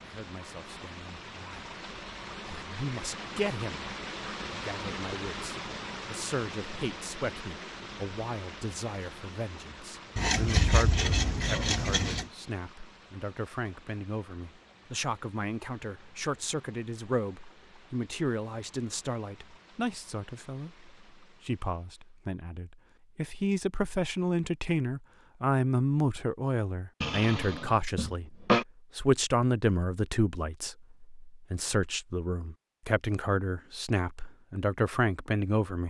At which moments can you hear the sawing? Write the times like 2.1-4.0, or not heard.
10.2-12.3, 27.0-28.6.